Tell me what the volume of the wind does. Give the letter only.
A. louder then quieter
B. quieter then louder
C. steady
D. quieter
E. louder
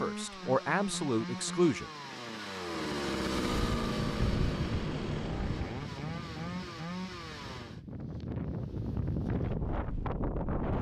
B.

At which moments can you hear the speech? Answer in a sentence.
You can hear the speech from 0.0 to 1.9 s.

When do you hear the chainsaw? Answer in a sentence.
The chainsaw can be heard from 0.0 to 7.8 s.